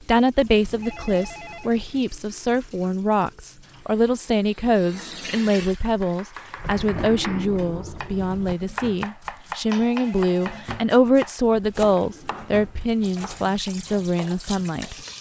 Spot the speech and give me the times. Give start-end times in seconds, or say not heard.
0.1-14.9.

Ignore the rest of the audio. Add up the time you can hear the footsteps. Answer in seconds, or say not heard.
not heard.